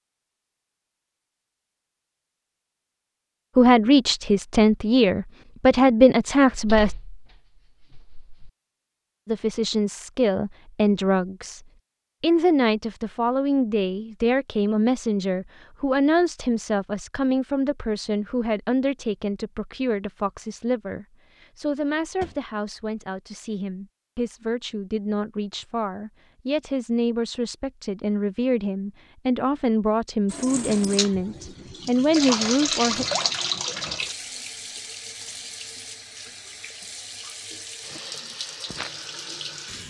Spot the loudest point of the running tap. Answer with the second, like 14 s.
33 s.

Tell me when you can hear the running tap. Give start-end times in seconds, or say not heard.
30.2-39.8.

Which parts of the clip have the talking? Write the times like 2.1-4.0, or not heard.
3.5-7.0, 9.2-11.6, 12.2-33.0.